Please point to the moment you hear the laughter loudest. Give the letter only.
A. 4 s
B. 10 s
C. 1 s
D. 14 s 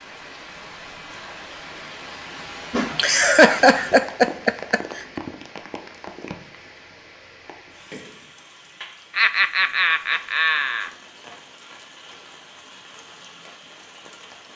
A.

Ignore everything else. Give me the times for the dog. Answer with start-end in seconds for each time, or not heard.
not heard.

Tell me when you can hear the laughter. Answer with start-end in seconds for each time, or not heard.
2.7-5.0, 9.2-10.9.